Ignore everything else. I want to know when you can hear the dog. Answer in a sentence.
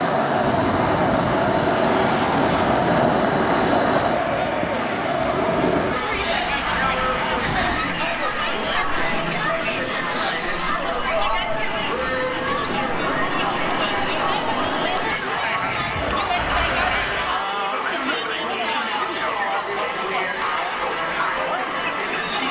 The dog can't be heard in this clip.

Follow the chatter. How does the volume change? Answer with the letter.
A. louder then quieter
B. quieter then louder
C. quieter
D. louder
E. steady
E.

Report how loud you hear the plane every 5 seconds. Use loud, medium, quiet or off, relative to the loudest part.
loud, off, medium, medium, off.